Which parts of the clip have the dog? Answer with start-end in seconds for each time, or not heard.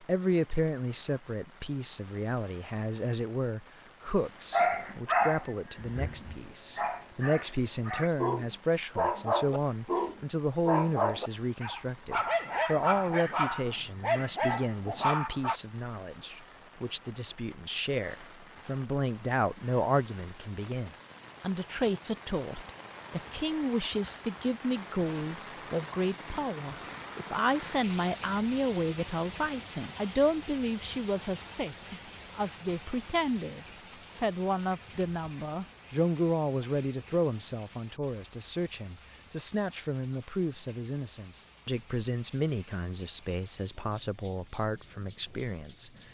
4.5-15.6.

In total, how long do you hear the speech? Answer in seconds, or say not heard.
46 s.